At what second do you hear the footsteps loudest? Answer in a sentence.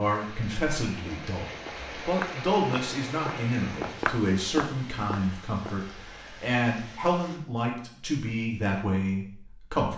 The volume of the footsteps peaks at 4 seconds.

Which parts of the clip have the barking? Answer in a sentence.
The barking can't be heard in this clip.